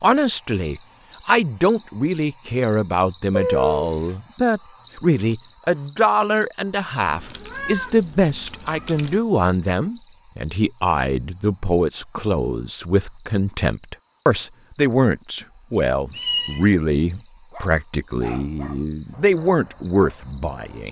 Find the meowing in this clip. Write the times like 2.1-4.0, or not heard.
3.3-4.1, 7.0-9.2, 16.1-16.7.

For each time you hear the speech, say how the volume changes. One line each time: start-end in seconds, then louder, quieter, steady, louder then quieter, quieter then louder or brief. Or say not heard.
0.0-20.8 steady.